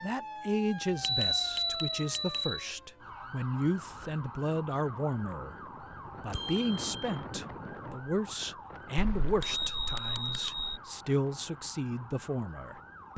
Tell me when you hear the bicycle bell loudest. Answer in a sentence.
The loudest moment of the bicycle bell is at 1 second.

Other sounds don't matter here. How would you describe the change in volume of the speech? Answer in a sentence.
The loudness of the speech stays about the same.